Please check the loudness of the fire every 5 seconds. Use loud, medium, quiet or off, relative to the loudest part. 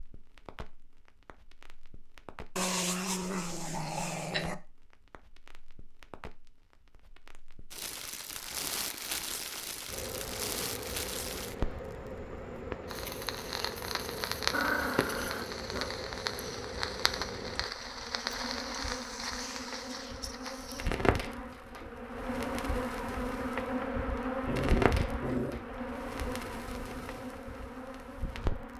quiet, medium, loud, loud, loud, medium.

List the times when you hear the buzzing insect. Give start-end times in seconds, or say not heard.
9.8-28.7.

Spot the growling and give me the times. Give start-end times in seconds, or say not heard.
2.5-4.5, 14.5-15.9, 24.4-25.6.